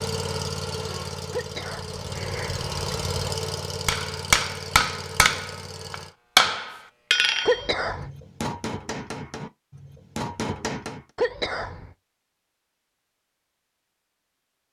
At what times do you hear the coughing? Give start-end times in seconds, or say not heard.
1.3-3.2, 7.5-8.1, 11.2-11.9.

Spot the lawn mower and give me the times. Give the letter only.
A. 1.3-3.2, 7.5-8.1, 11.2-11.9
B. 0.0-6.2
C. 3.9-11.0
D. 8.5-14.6
B.